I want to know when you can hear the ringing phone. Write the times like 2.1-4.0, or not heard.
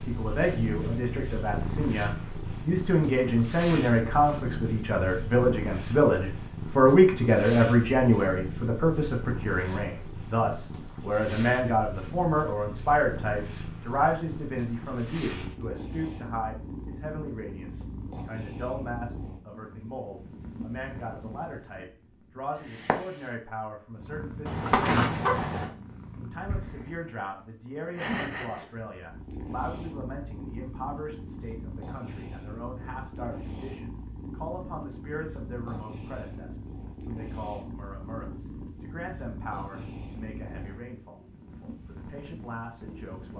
24.4-25.7.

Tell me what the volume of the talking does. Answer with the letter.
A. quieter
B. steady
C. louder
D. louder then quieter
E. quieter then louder
A.